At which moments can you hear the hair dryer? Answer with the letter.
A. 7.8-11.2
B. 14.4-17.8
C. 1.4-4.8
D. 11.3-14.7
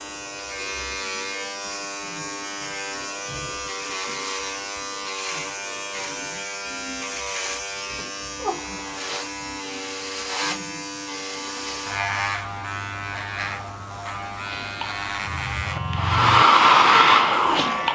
B.